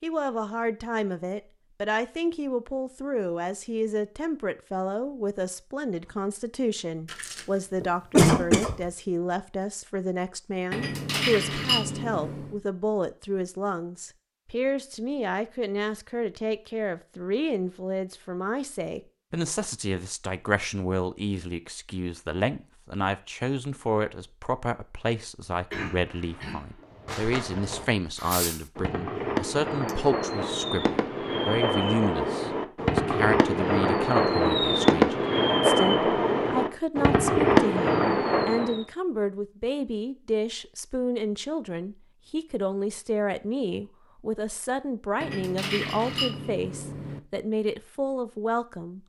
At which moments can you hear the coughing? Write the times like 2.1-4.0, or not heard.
7.1-8.8, 25.7-26.8.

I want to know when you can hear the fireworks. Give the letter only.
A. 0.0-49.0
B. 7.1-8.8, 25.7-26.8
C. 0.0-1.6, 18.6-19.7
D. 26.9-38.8
D.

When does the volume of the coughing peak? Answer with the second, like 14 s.
8 s.